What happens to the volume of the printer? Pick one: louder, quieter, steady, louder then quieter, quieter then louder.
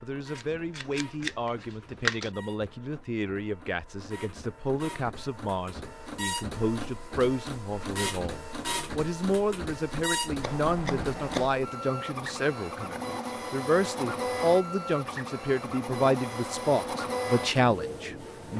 louder.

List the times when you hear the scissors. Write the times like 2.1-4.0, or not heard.
0.3-2.3, 10.4-11.5.